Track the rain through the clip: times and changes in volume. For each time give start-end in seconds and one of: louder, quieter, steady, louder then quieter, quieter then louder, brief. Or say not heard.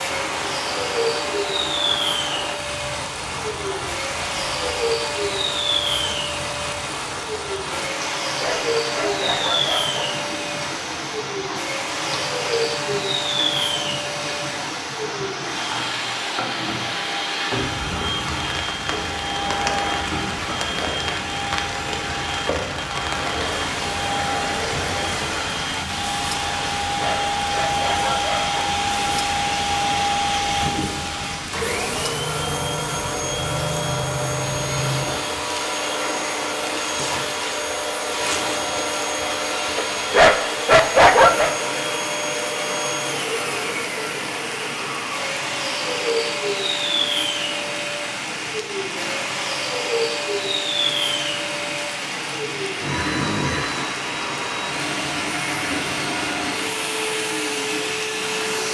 0.0-58.6 steady.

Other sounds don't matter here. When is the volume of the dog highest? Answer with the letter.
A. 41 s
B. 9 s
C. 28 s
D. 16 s
A.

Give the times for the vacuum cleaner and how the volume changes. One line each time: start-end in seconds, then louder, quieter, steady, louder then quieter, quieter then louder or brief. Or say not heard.
0.0-58.6 steady.